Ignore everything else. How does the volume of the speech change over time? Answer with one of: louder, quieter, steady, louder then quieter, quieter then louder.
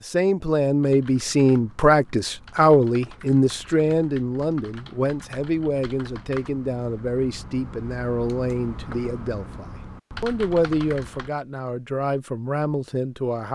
quieter.